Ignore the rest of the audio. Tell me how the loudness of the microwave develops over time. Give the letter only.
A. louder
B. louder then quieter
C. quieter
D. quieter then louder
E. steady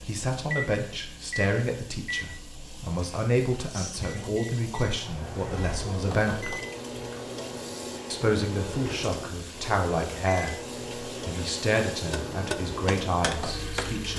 E.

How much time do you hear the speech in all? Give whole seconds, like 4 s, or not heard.
12 s.